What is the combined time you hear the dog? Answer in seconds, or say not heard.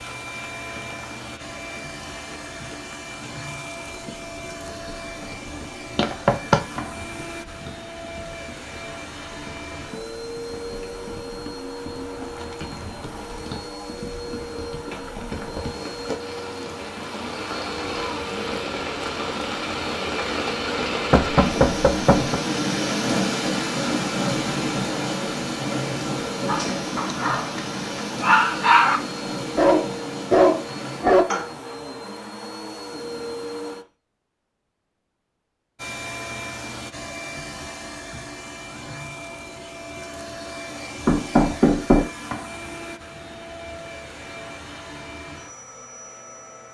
5 s.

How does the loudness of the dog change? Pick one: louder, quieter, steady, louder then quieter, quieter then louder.
louder.